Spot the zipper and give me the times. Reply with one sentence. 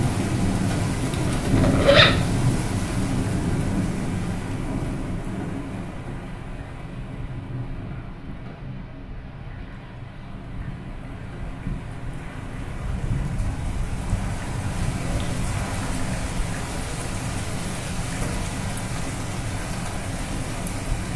You can hear the zipper from 1.2 to 2.1 s.